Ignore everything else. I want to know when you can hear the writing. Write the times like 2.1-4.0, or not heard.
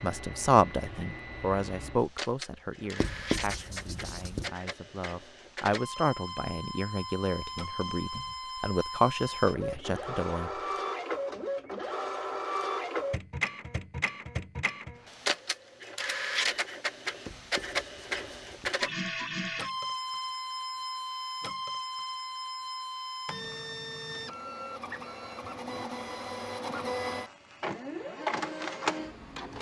3.0-4.5, 17.2-18.8.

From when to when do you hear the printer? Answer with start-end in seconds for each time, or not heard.
0.0-29.5.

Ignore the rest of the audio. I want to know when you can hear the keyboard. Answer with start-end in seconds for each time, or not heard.
not heard.